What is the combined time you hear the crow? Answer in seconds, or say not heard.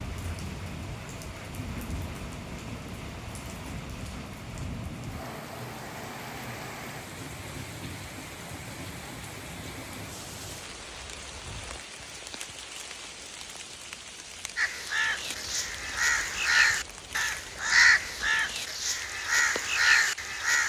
6 s.